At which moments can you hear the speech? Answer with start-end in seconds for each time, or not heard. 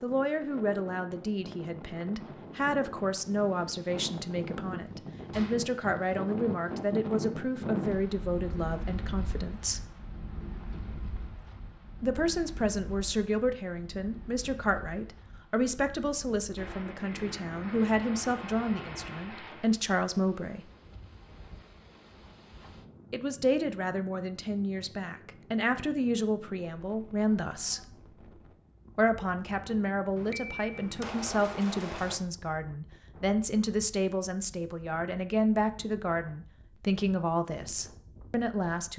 0.0-9.8, 12.0-20.7, 23.1-27.8, 28.9-38.9.